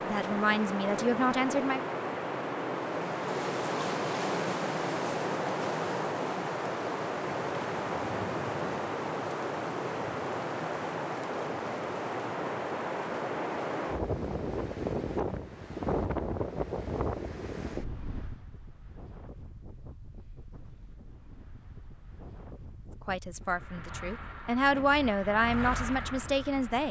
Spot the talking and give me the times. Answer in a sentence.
You can hear the talking from 0.0 to 1.8 s and from 23.1 to 26.8 s.